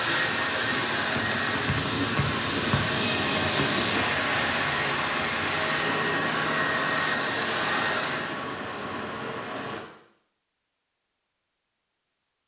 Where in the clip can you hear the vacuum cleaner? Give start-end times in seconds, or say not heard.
0.0-8.4.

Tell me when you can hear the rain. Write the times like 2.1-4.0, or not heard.
0.0-9.8.